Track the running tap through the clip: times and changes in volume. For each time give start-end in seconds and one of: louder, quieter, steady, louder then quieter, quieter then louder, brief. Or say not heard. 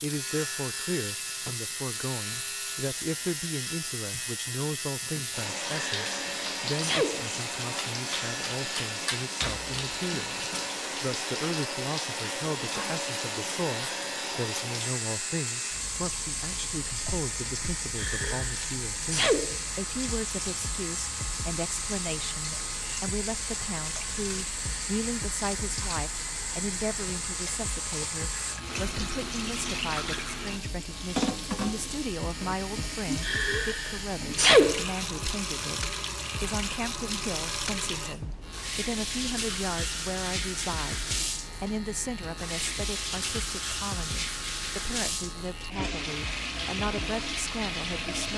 0.0-48.3 steady.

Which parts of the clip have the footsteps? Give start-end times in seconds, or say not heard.
not heard.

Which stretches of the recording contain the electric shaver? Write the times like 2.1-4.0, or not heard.
0.0-48.3.